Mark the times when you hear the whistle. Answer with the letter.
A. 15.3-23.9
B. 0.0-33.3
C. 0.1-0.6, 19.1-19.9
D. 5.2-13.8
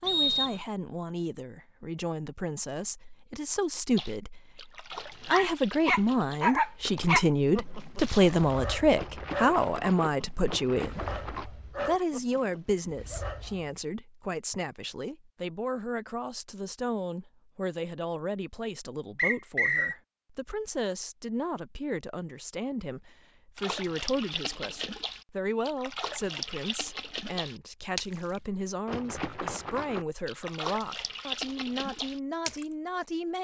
C.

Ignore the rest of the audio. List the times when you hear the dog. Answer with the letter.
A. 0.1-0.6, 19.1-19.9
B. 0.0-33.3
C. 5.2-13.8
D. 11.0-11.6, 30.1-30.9
C.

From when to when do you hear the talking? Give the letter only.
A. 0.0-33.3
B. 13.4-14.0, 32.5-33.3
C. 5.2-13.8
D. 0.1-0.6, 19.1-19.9
A.